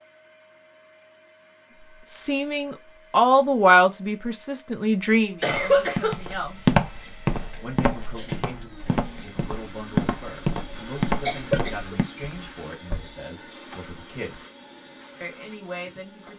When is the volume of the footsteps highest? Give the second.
7 s.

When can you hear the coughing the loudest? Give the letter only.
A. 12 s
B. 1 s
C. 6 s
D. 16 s
C.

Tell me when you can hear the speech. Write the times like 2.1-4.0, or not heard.
2.0-6.7, 7.6-14.4, 15.2-16.3.